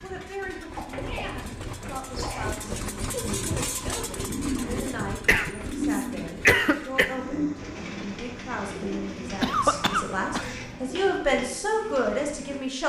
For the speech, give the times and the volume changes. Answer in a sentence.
You can hear the speech from 0.0 to 12.8 s, getting louder.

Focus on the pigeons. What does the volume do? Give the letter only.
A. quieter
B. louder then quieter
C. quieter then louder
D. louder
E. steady
B.